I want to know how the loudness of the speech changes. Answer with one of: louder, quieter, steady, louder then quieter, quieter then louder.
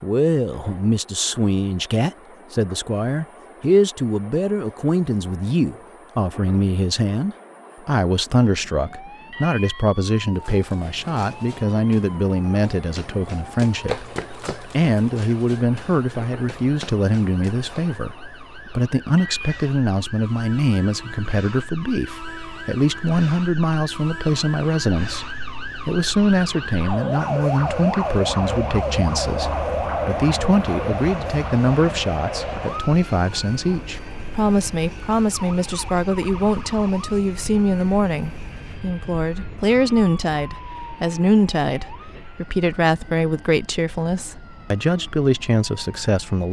steady.